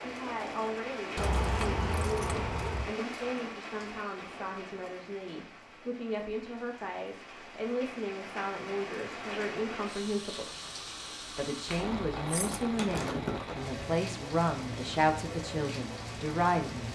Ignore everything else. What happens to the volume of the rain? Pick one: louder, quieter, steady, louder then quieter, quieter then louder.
quieter then louder.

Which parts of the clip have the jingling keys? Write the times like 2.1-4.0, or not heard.
1.1-3.0, 11.7-13.4.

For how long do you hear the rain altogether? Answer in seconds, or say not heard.
17 s.